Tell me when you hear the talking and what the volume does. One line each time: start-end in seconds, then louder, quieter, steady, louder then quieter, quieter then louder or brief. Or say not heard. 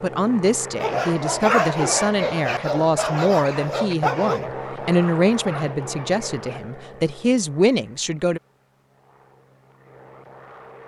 0.0-8.4 steady.